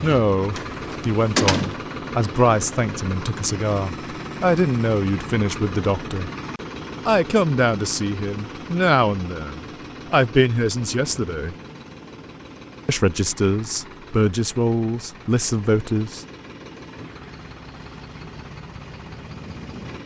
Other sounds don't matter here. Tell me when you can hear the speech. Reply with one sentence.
You can hear the speech from 0.0 to 6.3 s, from 7.0 to 11.6 s and from 12.8 to 16.2 s.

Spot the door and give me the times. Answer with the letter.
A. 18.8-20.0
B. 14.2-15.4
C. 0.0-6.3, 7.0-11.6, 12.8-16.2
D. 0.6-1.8
D.